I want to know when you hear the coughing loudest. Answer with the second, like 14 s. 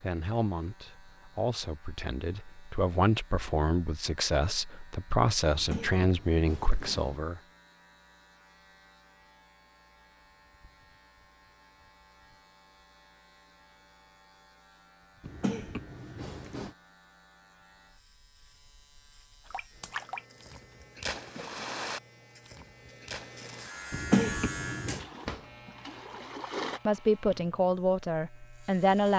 24 s.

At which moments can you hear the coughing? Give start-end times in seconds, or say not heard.
5.5-7.2, 15.2-16.8, 23.9-25.1.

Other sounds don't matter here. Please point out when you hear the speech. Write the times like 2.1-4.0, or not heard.
0.0-7.4, 26.9-29.1.